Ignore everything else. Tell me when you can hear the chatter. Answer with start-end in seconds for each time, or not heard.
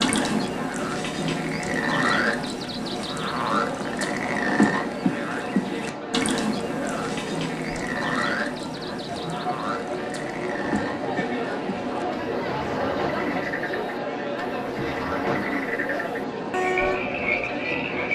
0.0-18.0.